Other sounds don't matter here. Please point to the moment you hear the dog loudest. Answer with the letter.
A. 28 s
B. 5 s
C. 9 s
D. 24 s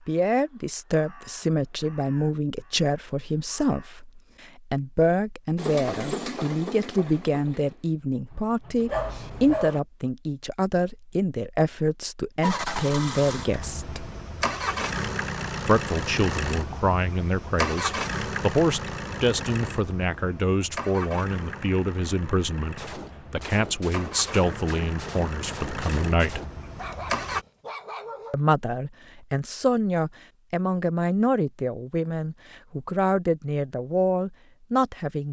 C.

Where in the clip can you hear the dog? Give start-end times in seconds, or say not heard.
8.8-9.8, 26.8-28.4.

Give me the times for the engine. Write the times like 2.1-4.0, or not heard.
5.5-9.6, 12.4-27.4.